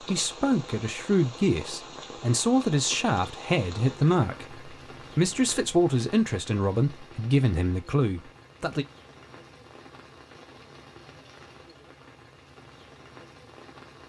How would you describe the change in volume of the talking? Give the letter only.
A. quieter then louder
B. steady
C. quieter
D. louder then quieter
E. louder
B.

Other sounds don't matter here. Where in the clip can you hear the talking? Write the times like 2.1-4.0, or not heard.
0.0-8.8.